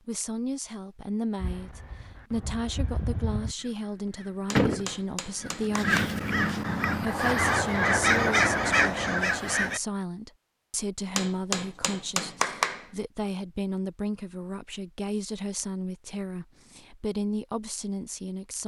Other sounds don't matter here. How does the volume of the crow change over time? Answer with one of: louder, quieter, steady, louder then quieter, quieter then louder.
louder.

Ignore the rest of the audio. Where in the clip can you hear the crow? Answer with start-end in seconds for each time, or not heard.
1.4-9.8.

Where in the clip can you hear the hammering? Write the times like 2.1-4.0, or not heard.
4.5-6.2, 11.2-12.8.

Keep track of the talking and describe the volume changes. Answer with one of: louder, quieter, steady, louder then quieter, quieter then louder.
steady.